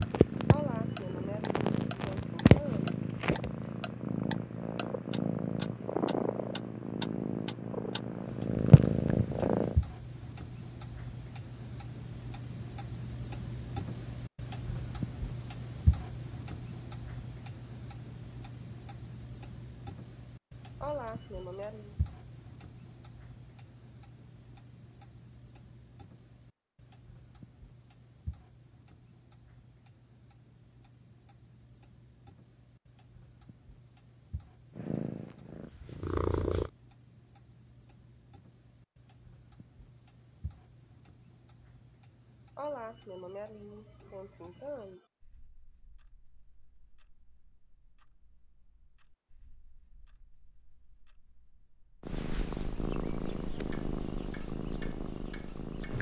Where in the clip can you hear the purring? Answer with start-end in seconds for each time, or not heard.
0.0-9.8, 34.8-36.7, 52.0-55.9.